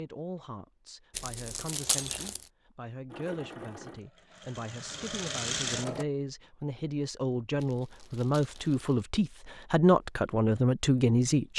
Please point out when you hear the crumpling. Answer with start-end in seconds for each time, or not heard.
1.1-2.5, 7.5-9.0.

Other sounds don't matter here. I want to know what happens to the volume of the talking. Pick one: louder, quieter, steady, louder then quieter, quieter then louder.
louder.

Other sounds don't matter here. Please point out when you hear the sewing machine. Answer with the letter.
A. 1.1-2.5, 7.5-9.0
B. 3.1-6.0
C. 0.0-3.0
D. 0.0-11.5
B.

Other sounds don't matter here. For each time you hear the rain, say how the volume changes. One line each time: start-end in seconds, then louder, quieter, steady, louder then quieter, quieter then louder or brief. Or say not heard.
not heard.